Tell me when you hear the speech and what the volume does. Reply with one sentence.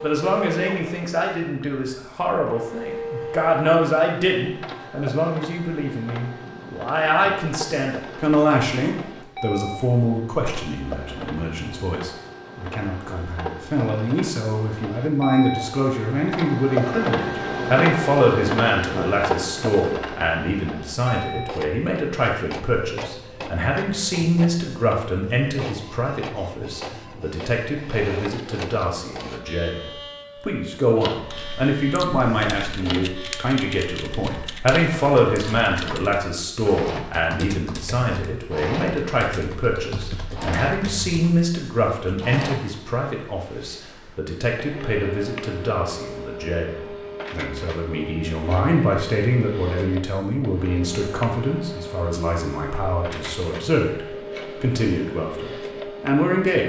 The speech can be heard from 0.0 to 56.6 s, at a steady volume.